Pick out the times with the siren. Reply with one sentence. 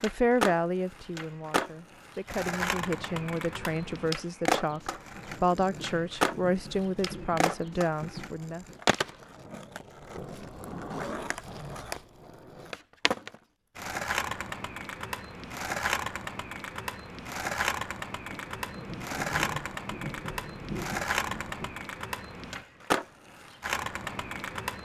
The siren can't be heard in this clip.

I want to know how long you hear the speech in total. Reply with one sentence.
You can hear the speech for 9 seconds altogether.